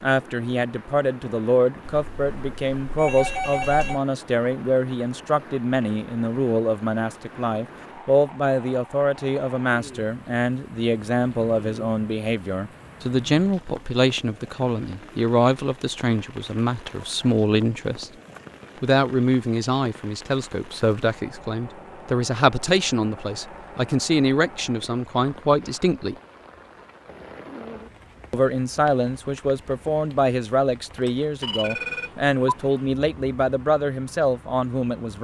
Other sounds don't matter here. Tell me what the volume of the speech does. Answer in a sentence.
The loudness of the speech stays about the same.